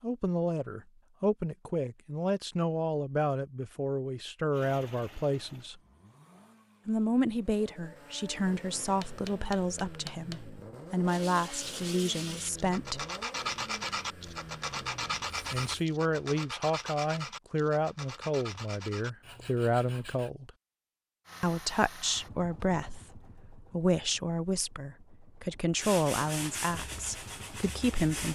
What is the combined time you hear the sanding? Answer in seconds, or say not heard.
12 s.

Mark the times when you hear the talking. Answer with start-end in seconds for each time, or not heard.
0.0-5.8, 6.8-13.1, 15.5-20.5, 21.4-28.2.